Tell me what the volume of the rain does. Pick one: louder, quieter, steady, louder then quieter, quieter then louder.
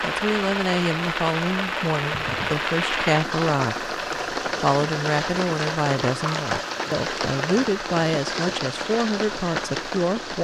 steady.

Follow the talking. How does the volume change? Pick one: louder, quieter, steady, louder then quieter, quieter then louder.
steady.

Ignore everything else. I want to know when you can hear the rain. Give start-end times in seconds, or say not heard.
0.0-10.4.